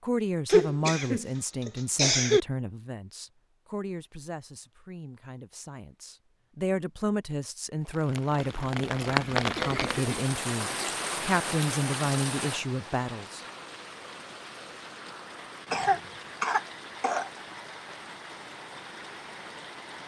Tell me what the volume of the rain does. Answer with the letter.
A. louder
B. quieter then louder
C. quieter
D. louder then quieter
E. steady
C.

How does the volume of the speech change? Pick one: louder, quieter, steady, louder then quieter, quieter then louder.
quieter then louder.